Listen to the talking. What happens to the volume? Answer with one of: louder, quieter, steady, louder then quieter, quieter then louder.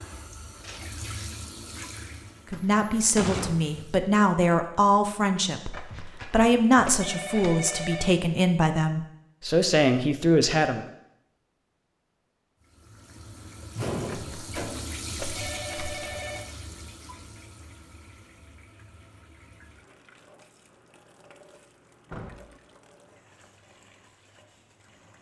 steady.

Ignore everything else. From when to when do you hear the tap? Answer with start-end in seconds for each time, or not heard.
0.0-4.0, 12.6-25.1.